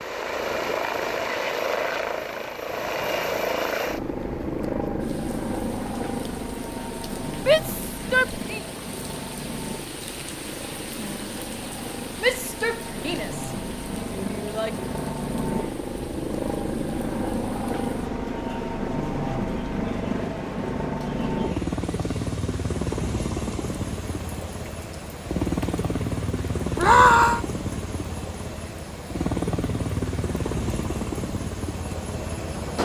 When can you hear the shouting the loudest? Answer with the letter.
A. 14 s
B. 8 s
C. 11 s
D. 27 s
D.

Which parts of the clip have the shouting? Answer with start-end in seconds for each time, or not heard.
7.5-8.6, 12.2-14.7, 26.8-27.4.